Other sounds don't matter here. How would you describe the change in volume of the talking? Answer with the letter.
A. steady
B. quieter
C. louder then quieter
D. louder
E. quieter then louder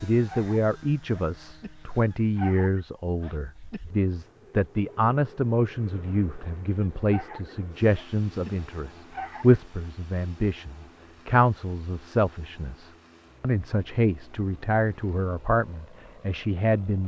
A.